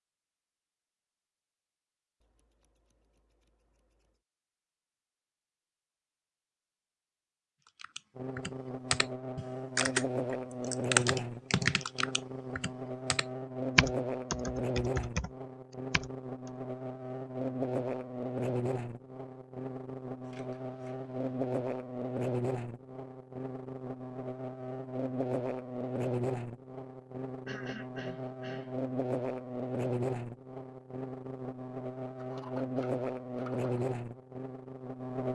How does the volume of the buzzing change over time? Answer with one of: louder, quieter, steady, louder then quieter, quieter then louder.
steady.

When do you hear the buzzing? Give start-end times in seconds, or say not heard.
8.2-35.3.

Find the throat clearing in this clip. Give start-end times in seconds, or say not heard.
27.4-28.8.